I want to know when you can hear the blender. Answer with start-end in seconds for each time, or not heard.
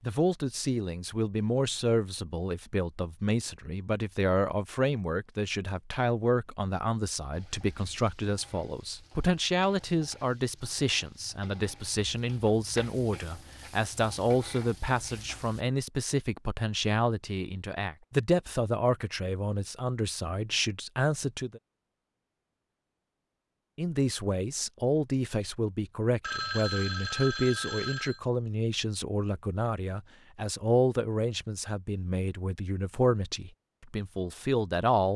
not heard.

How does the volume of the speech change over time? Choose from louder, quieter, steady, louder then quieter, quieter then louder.
steady.